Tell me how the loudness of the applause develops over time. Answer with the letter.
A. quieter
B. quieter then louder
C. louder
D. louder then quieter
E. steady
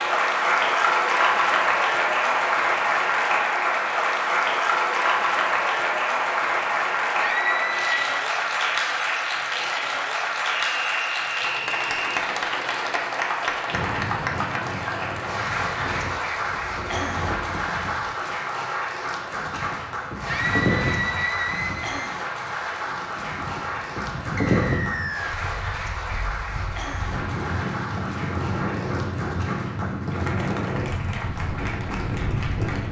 A.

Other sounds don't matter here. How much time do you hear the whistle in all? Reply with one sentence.
You can hear the whistle for 3 seconds altogether.